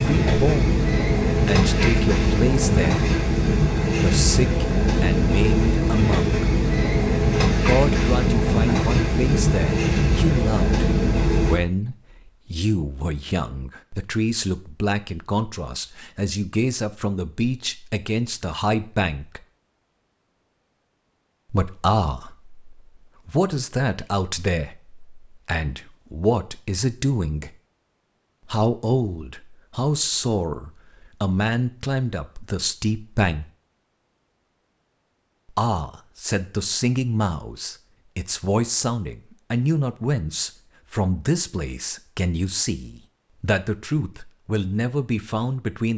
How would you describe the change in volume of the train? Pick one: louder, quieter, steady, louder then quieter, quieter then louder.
steady.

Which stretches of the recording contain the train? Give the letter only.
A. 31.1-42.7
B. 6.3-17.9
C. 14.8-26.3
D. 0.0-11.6
D.